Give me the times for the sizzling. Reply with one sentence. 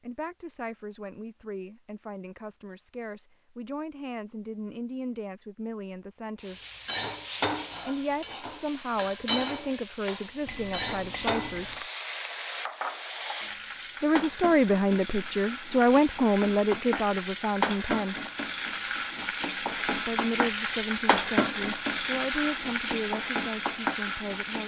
The sizzling can be heard from 6.4 to 24.6 s.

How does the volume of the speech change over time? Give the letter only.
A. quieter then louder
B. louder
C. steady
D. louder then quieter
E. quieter
D.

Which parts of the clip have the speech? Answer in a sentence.
You can hear the speech from 0.0 to 6.6 s, from 7.8 to 11.8 s, from 14.0 to 18.1 s and from 19.9 to 24.6 s.